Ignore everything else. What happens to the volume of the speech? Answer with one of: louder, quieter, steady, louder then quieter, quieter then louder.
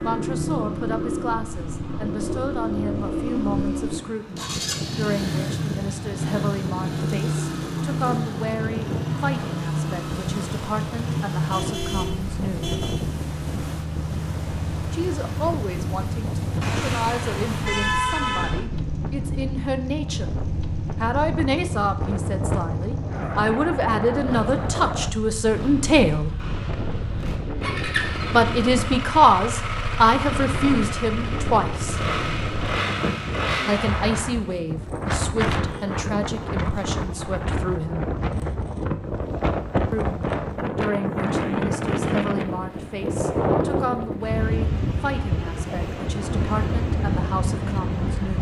louder then quieter.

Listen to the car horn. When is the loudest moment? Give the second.
18 s.